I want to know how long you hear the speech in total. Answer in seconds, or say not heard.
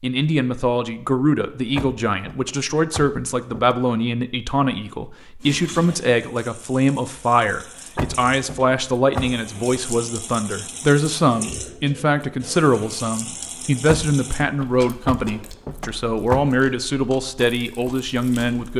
19 s.